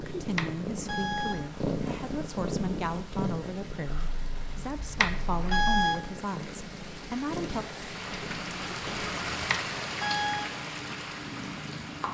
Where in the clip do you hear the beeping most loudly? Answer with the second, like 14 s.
6 s.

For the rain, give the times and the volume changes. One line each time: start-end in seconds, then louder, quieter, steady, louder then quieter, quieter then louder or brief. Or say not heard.
0.0-12.0 louder.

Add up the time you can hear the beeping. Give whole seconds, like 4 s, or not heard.
3 s.